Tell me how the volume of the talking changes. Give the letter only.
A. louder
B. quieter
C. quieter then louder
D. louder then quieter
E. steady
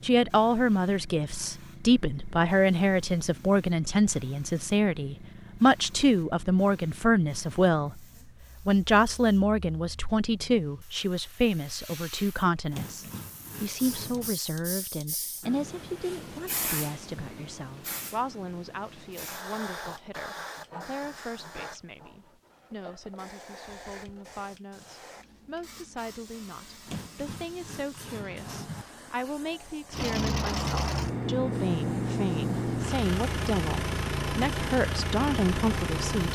C.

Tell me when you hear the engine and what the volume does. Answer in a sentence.
You can hear the engine from 29.9 to 36.3 s, at a steady volume.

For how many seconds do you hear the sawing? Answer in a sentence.
The sawing can be heard for 4 seconds in total.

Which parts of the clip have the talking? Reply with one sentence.
The talking can be heard from 0.0 to 8.0 s and from 8.7 to 36.3 s.